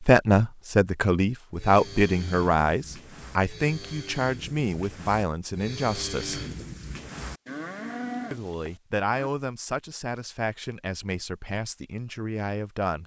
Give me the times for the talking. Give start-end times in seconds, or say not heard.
0.0-6.4, 8.3-13.0.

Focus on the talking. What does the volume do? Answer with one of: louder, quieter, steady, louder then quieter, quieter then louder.
quieter.